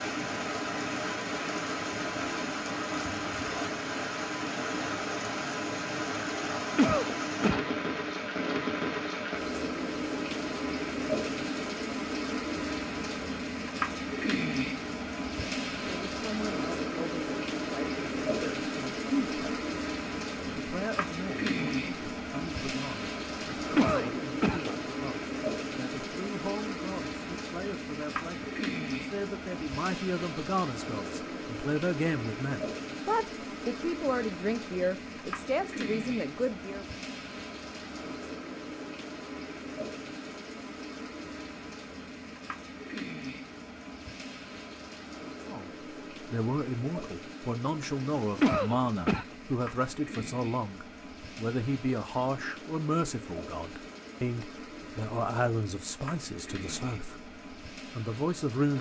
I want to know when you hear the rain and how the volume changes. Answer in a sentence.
You can hear the rain from 0.0 to 58.7 s, getting quieter.